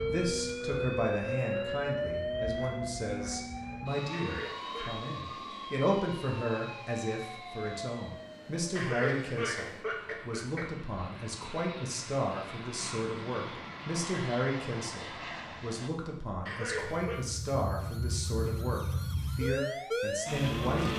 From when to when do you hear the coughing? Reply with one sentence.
The coughing can be heard from 4.1 to 5.0 s, from 8.8 to 10.7 s and from 16.4 to 17.2 s.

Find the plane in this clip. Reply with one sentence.
The plane can be heard from 0.0 to 15.9 s.